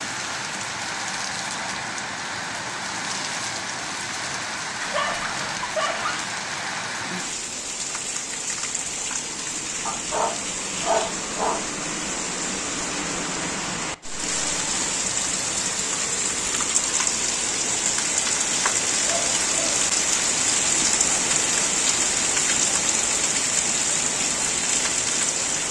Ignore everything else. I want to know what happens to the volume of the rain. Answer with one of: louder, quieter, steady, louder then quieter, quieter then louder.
louder.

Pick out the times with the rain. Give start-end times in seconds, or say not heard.
0.0-25.6.